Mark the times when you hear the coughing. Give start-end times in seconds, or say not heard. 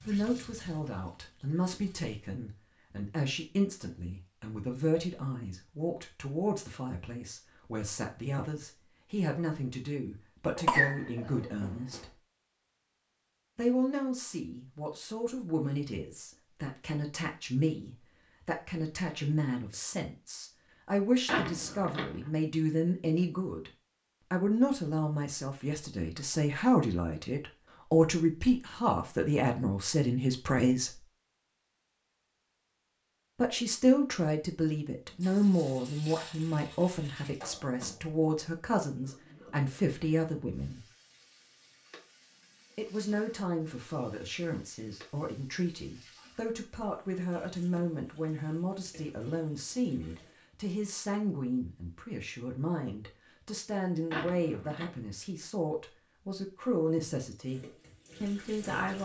10.6-12.0.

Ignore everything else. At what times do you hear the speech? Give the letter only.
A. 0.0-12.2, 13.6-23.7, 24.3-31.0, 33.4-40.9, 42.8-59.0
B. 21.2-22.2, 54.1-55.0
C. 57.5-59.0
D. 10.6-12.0
A.